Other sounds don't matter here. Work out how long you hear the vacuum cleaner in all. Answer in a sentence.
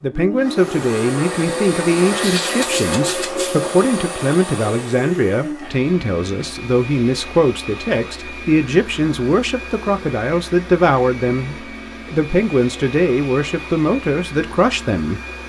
You can hear the vacuum cleaner for 15 seconds altogether.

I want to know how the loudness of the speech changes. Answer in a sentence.
The volume of the speech stays about the same.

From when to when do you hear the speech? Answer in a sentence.
The speech can be heard from 0.0 to 15.2 s.